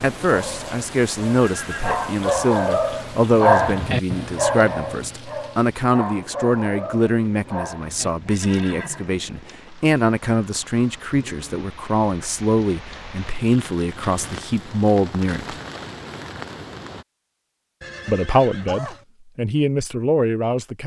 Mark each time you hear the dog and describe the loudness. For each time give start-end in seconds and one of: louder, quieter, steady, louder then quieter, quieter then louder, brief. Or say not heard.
0.1-8.1 louder then quieter.